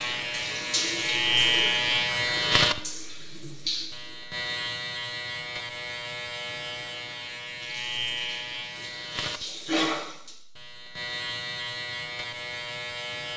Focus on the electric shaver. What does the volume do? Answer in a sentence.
The volume of the electric shaver goes down.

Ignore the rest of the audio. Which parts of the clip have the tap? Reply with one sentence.
The tap can be heard from 0.0 to 4.2 s and from 7.6 to 10.3 s.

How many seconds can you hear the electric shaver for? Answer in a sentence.
The electric shaver can be heard for 13 seconds in total.